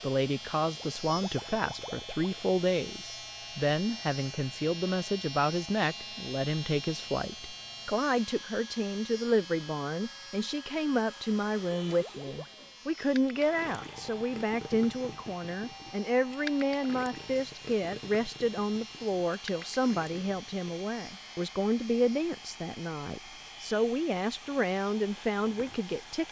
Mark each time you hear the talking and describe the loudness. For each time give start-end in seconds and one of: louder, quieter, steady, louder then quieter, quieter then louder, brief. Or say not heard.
0.0-26.2 steady.